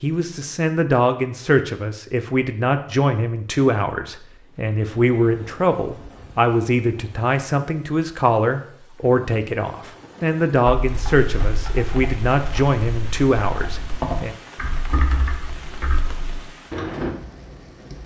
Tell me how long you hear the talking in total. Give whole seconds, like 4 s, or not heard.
14 s.